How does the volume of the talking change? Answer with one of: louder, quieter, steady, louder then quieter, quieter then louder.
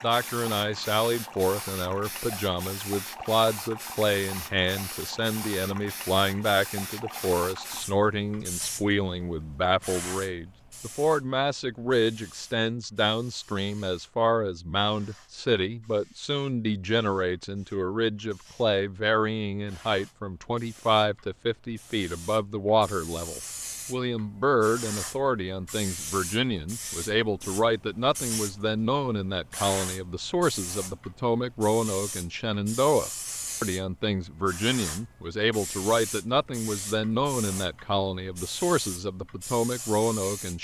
steady.